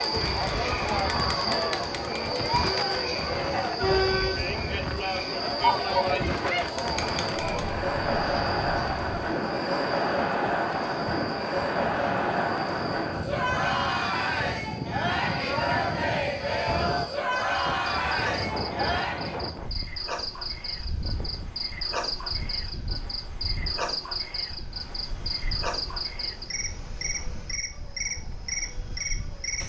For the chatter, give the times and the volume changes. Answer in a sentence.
The chatter can be heard from 0.0 to 19.4 s, at a steady volume.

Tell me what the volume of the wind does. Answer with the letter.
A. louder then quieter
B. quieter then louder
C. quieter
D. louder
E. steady
C.